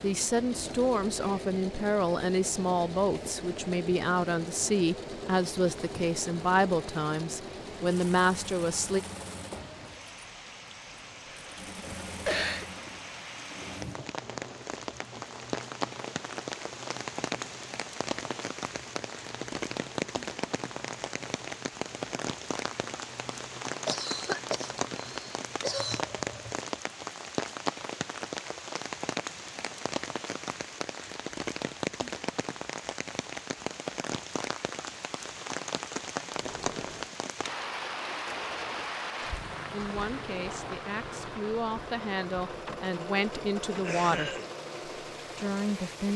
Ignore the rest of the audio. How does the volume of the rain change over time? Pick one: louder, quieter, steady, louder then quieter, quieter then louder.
louder.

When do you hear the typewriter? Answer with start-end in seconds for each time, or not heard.
not heard.